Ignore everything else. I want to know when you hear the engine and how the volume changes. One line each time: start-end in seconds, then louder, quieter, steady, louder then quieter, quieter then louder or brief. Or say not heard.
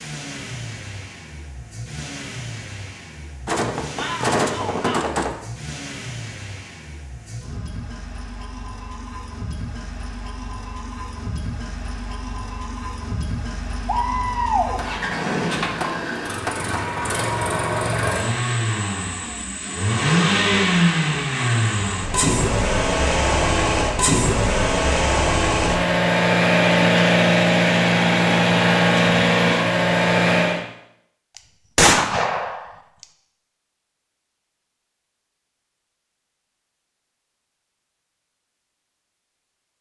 0.0-30.6 louder.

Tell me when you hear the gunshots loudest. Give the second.
32 s.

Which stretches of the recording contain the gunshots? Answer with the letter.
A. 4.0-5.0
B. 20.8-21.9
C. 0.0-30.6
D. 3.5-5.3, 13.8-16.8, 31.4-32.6
D.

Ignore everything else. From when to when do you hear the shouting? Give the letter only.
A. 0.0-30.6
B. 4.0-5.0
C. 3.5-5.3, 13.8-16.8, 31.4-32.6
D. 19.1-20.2
B.